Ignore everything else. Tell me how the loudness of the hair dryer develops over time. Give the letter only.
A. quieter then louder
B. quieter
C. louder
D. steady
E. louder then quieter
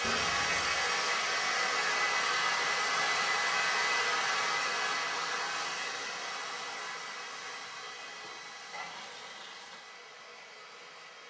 B.